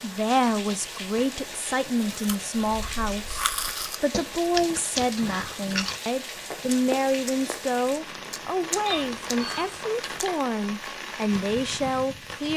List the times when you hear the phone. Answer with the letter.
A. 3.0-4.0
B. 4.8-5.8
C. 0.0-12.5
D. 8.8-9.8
D.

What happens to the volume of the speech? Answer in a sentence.
The volume of the speech stays about the same.